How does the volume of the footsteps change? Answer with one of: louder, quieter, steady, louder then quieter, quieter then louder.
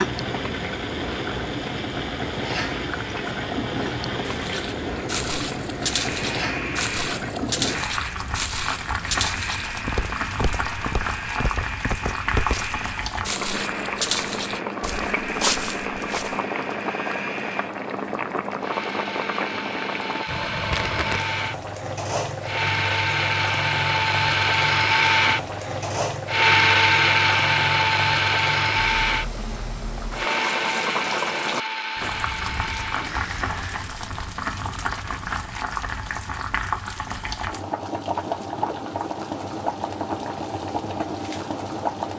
steady.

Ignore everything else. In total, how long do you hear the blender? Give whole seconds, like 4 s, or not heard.
34 s.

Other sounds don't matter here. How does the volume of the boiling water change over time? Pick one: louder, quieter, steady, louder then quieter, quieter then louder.
steady.